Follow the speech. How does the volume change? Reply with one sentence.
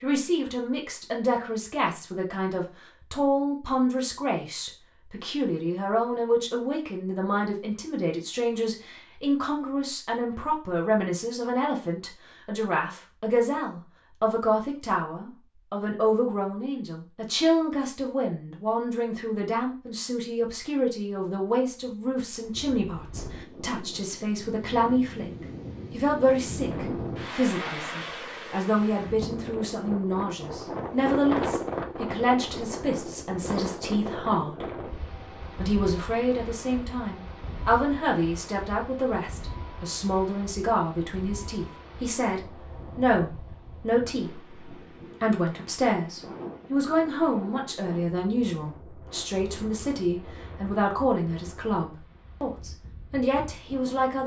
The loudness of the speech stays about the same.